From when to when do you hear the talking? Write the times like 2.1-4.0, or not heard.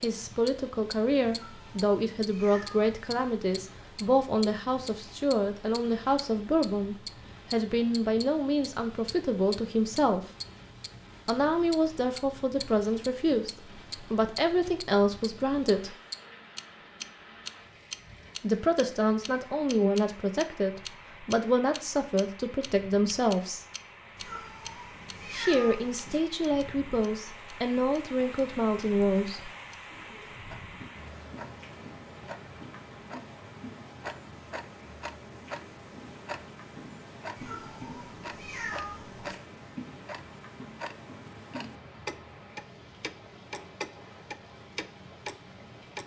0.0-10.3, 11.2-15.9, 18.4-23.6, 25.3-29.5.